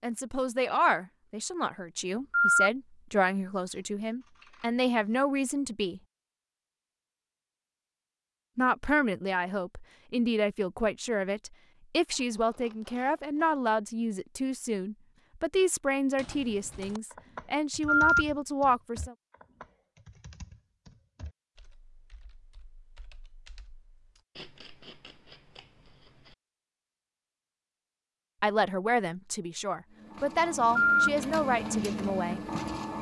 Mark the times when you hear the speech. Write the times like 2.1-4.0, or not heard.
0.0-6.0, 8.6-19.1, 28.4-32.4.